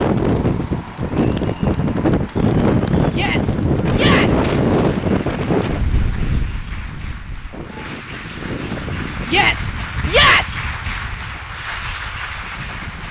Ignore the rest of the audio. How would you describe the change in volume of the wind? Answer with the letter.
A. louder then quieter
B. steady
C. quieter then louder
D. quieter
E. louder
D.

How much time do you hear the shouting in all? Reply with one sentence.
The shouting can be heard for 3 seconds in total.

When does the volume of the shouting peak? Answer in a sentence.
The loudest moment of the shouting is at 10 seconds.